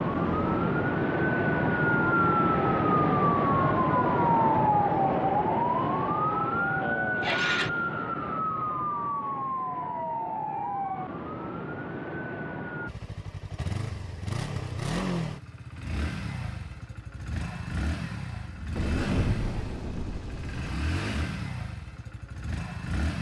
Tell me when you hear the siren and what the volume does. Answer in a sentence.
You can hear the siren from 0.0 to 12.9 s, getting quieter.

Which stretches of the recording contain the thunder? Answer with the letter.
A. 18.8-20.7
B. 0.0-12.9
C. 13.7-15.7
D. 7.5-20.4
A.